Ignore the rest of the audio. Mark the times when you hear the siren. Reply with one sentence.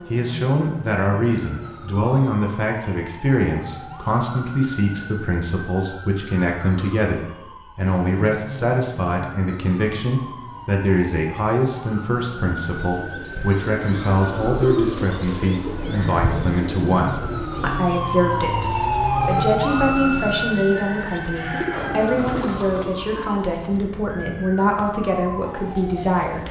You can hear the siren from 0.0 to 26.4 s.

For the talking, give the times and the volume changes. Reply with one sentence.
You can hear the talking from 0.1 to 26.4 s, at a steady volume.